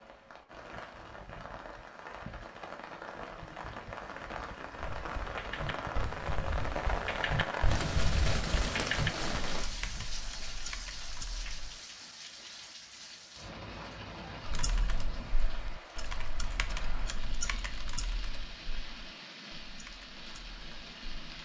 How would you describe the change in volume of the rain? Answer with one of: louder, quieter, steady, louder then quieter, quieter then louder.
louder then quieter.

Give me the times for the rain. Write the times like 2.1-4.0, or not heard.
0.0-21.3.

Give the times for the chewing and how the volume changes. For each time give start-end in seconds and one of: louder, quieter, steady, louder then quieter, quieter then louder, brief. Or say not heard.
not heard.